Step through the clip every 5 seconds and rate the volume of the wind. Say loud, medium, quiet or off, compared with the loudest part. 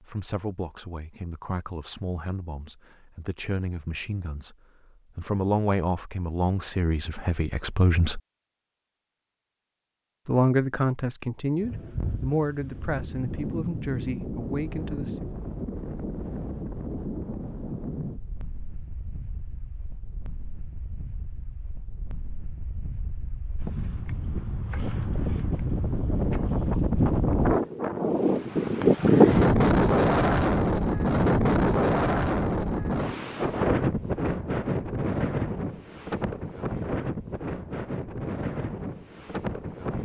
off, off, quiet, quiet, quiet, loud, loud, medium.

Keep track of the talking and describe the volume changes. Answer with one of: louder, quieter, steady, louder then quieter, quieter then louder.
louder then quieter.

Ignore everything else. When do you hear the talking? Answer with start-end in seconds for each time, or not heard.
0.0-4.5, 5.2-8.2, 10.2-15.2.